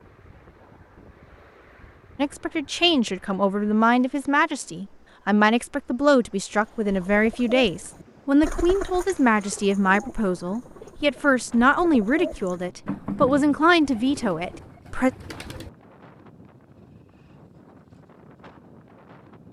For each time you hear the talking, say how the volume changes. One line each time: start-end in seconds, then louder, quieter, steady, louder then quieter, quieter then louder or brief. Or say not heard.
2.1-15.1 steady.